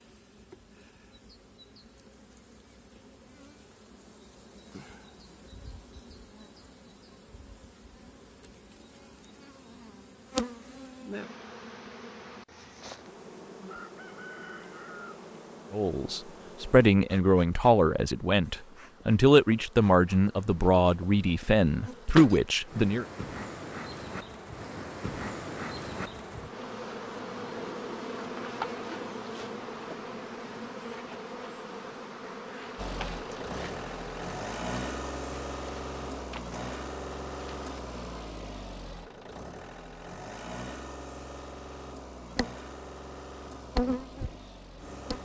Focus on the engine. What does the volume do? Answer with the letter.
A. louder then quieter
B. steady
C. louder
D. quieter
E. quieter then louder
D.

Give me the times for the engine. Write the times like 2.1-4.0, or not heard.
32.8-45.2.